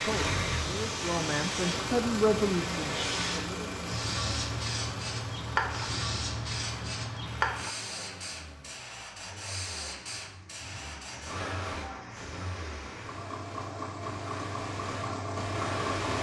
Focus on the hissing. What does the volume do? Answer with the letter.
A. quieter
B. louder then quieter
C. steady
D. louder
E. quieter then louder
A.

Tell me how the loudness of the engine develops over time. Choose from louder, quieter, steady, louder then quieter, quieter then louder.
quieter then louder.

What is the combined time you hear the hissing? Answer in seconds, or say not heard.
16 s.